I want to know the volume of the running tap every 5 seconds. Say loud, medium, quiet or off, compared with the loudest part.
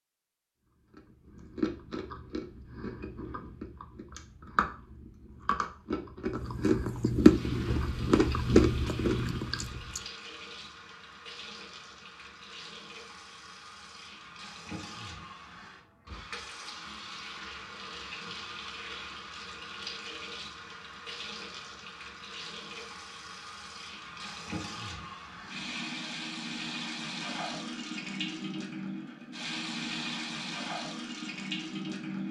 off, medium, medium, medium, medium, loud, loud.